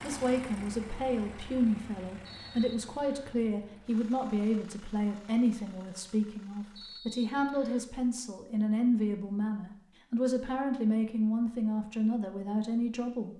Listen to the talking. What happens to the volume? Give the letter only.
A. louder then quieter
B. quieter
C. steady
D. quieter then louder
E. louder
C.